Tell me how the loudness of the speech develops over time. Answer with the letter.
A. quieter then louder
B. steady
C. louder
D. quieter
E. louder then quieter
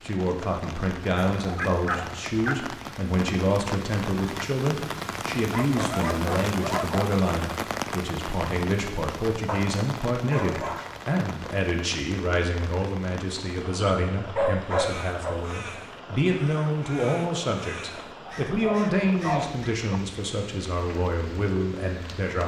B.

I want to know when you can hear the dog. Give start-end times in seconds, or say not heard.
1.4-2.6, 5.5-7.2, 9.4-10.9, 13.8-15.4, 18.2-20.0.